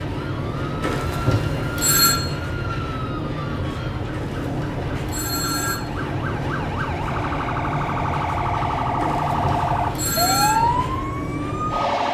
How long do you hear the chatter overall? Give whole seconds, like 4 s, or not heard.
not heard.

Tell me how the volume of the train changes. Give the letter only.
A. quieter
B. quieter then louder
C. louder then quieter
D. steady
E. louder
D.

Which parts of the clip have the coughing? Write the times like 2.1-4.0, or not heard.
not heard.